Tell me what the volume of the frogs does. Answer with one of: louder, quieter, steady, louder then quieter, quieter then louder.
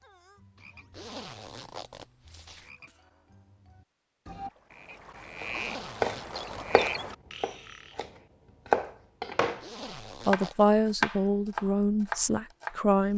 louder.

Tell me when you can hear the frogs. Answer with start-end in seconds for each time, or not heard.
0.0-8.0.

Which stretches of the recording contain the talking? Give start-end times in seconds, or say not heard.
10.2-13.1.